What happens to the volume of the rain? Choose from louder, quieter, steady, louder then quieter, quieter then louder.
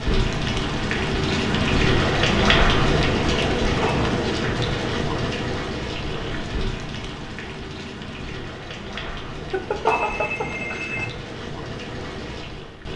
quieter.